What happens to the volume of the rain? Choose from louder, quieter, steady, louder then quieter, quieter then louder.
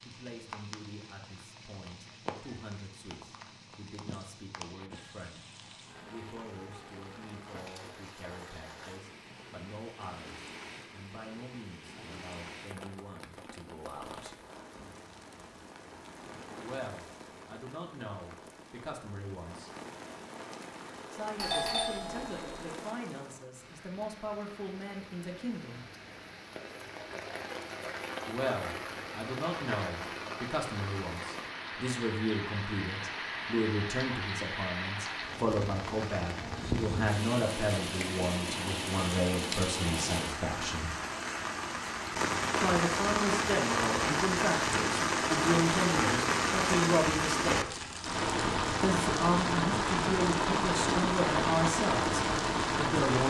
louder.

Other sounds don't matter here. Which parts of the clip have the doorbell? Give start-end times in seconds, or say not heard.
21.4-22.7.